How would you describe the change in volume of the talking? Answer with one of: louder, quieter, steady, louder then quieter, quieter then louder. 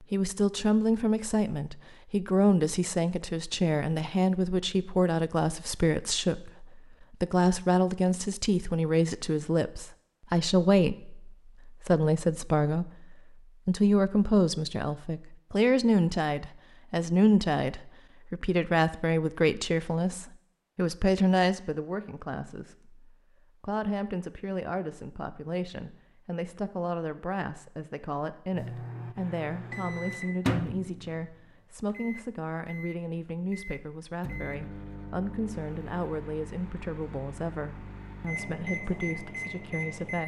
quieter.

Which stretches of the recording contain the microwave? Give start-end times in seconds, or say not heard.
28.5-40.2.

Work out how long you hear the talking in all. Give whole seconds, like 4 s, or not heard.
40 s.